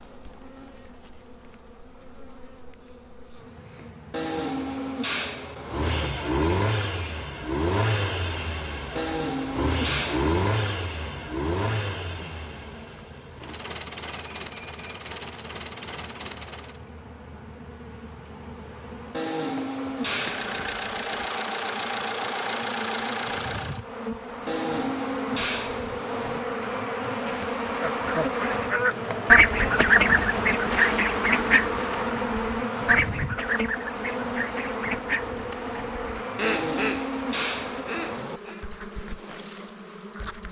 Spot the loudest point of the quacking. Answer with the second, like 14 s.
29 s.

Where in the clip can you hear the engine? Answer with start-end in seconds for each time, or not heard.
5.7-16.8, 20.1-23.9.